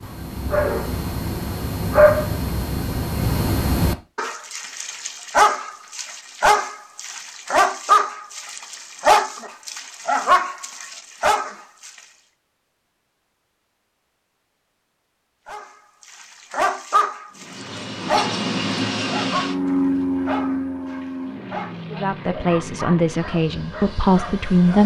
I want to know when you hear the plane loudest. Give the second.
20 s.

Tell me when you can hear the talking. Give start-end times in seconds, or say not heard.
21.9-24.8.